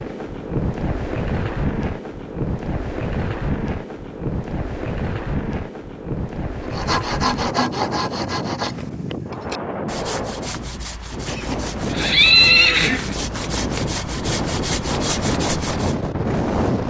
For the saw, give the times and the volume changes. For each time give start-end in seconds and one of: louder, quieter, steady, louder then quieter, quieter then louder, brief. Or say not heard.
6.6-15.9 quieter then louder.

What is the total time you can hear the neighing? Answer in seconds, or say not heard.
2 s.